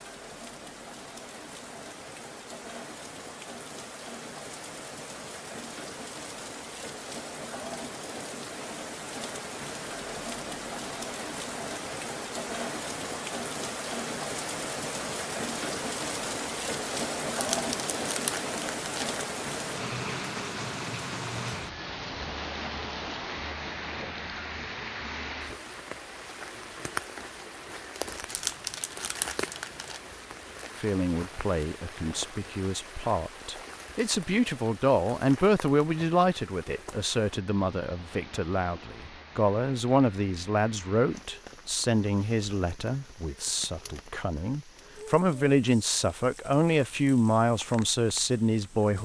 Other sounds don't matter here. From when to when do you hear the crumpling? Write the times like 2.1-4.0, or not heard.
17.4-19.2, 28.2-30.0.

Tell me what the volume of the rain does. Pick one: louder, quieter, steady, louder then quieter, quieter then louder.
louder then quieter.